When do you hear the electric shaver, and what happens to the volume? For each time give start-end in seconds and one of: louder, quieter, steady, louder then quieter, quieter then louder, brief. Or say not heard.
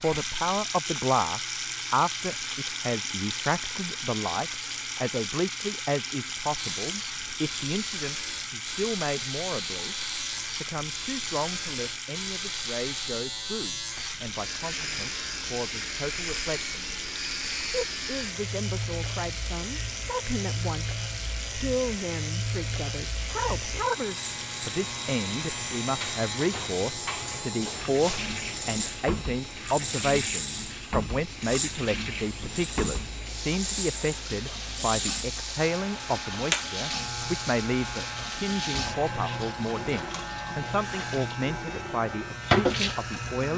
6.5-43.5 steady.